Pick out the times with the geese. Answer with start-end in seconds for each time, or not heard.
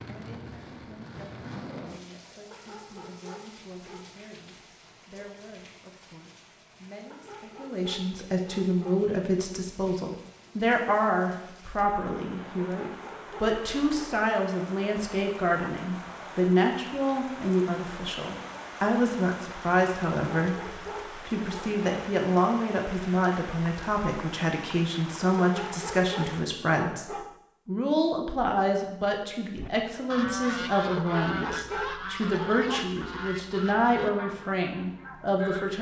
29.5-35.6.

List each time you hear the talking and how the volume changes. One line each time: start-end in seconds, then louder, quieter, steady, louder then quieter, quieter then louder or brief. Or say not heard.
0.1-35.7 louder.